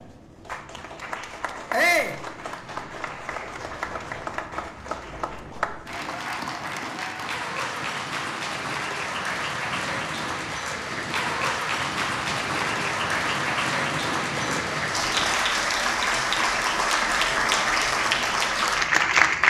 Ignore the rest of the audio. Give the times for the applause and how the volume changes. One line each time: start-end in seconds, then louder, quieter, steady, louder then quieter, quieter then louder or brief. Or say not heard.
0.0-19.4 louder.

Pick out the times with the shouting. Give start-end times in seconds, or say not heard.
1.7-2.2.